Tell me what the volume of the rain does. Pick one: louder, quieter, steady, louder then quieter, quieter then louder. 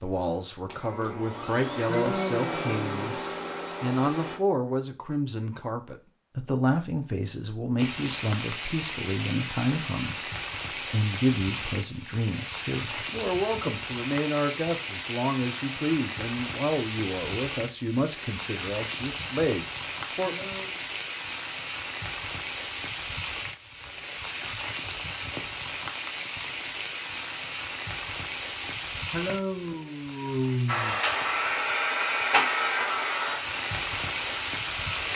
steady.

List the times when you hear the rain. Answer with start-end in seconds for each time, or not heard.
7.8-35.1.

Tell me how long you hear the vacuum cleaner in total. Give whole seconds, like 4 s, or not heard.
9 s.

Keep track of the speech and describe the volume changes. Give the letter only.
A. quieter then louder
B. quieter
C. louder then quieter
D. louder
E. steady
E.